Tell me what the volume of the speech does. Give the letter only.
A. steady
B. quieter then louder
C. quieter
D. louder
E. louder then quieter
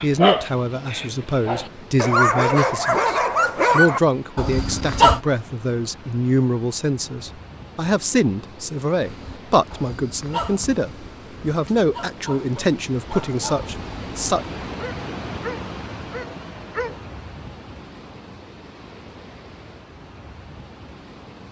A.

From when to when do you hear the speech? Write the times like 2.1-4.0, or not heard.
0.0-14.4.